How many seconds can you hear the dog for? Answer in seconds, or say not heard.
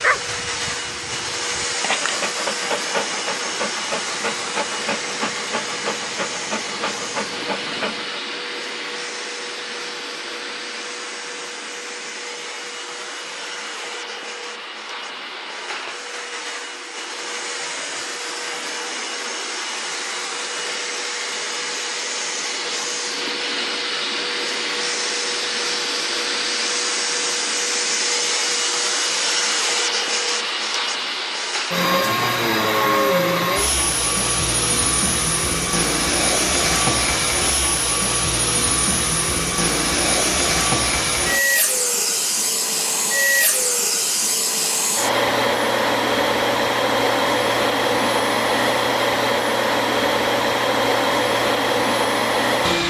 8 s.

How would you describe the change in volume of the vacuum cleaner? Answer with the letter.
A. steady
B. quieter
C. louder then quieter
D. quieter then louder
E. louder
E.